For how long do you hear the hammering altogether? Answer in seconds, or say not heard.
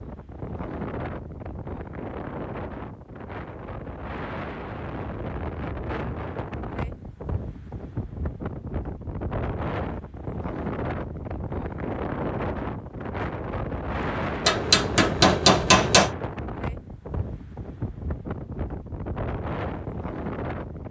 2 s.